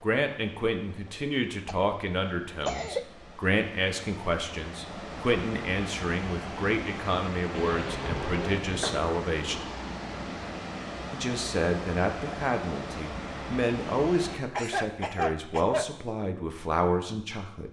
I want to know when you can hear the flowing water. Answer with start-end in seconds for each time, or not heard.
0.0-14.4.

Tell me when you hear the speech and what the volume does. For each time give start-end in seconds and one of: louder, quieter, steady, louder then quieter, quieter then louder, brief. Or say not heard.
0.0-9.7 steady
11.1-17.6 steady.